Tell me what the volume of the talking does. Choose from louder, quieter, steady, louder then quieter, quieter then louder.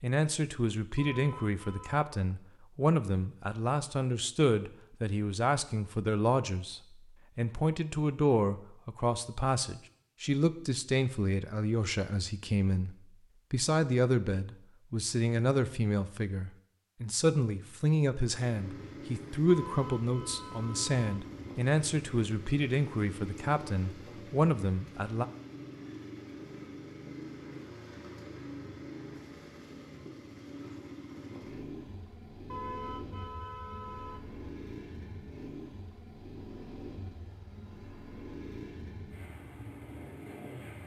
steady.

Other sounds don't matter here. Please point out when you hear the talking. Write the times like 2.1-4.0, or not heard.
0.0-25.2.